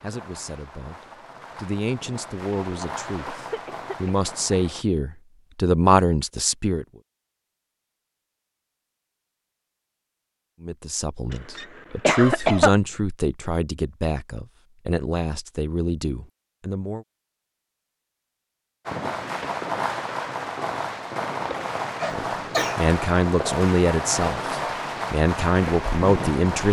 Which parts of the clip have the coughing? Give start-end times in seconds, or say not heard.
3.3-4.2, 11.3-12.7, 22.0-22.8.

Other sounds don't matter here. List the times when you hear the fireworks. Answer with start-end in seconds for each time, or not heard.
0.0-4.8, 18.9-26.6.